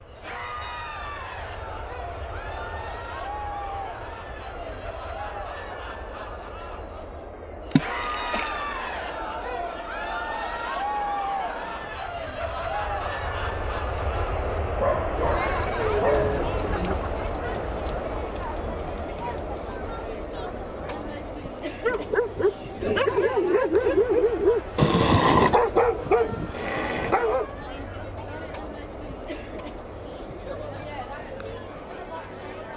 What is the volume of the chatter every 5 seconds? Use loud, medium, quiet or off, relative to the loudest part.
medium, loud, loud, loud, medium, medium, medium.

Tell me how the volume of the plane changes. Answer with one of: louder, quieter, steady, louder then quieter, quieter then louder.
louder then quieter.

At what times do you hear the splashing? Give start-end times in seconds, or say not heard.
7.7-8.6.